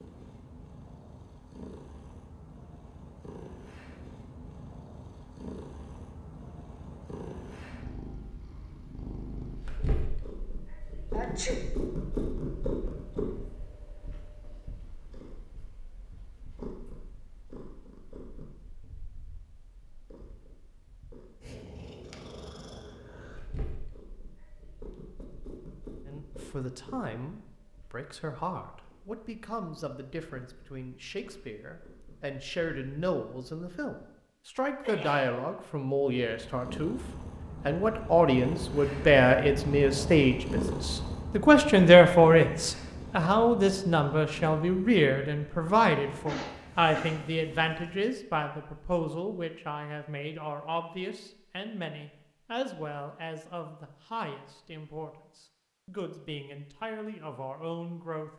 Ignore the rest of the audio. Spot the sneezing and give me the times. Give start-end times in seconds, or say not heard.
11.1-11.6, 34.8-35.5, 46.2-47.2.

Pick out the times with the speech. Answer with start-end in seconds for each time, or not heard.
26.1-37.0, 37.6-58.3.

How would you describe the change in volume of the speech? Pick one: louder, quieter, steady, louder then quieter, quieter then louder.
louder then quieter.